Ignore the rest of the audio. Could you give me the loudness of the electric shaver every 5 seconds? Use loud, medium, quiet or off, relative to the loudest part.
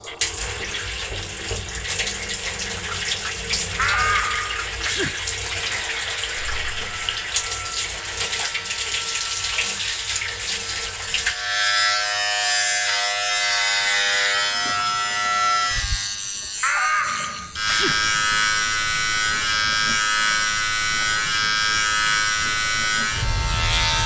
off, quiet, loud, loud, loud.